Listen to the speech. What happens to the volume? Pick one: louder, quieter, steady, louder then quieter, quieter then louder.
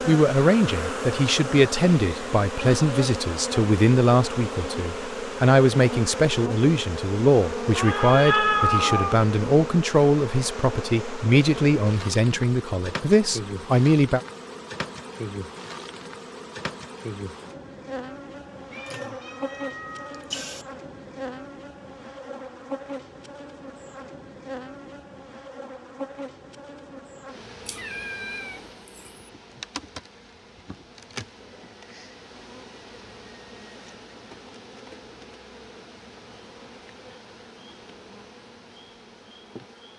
steady.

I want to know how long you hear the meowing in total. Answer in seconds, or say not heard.
5 s.